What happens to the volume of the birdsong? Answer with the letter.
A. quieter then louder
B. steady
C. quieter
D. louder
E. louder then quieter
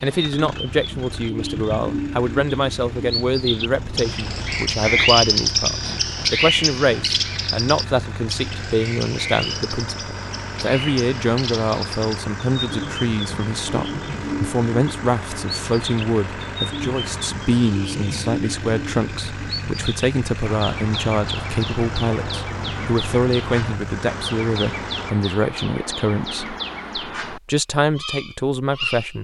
C.